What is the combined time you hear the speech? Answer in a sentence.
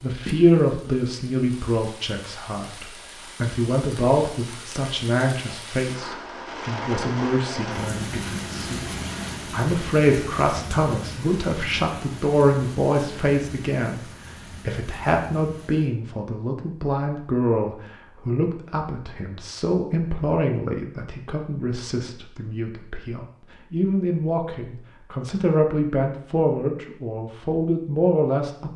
The speech can be heard for 29 seconds in total.